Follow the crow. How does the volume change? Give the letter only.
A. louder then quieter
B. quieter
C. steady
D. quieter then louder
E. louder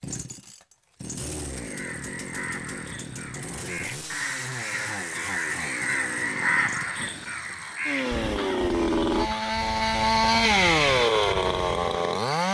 A.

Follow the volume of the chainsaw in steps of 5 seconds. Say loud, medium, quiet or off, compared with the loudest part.
quiet, medium, loud.